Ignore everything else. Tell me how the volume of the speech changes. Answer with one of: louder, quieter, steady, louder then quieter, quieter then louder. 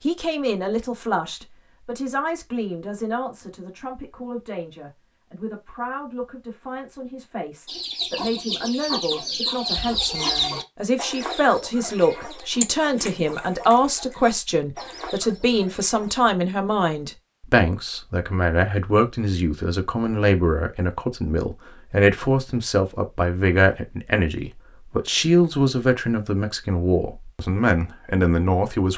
louder.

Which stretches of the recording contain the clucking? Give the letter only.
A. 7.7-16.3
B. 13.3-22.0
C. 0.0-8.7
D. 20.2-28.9
A.